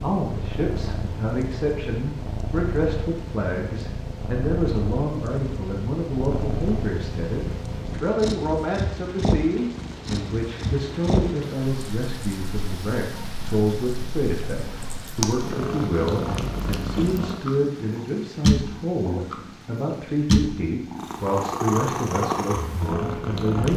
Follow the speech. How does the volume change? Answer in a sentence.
The loudness of the speech stays about the same.